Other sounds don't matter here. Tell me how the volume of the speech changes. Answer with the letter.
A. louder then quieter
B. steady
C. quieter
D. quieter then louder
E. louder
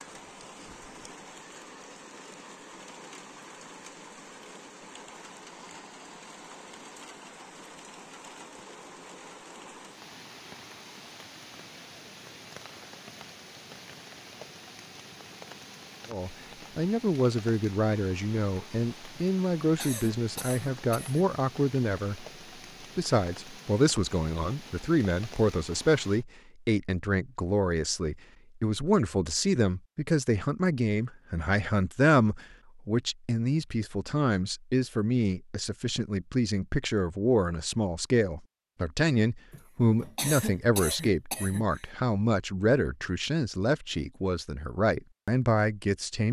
B.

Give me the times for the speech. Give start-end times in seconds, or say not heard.
16.1-22.2, 22.9-46.2.